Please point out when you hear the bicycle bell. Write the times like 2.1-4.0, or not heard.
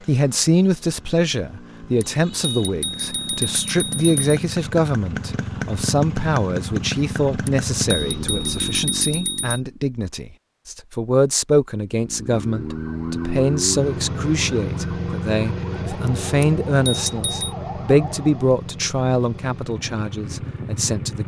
2.0-4.4, 7.5-9.6, 16.4-17.6.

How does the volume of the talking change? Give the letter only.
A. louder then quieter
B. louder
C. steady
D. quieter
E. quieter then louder
C.